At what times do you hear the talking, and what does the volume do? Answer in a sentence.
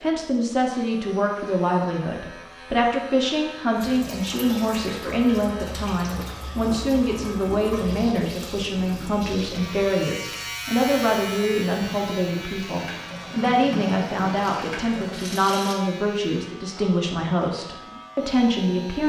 You can hear the talking from 0.0 to 19.0 s, at a steady volume.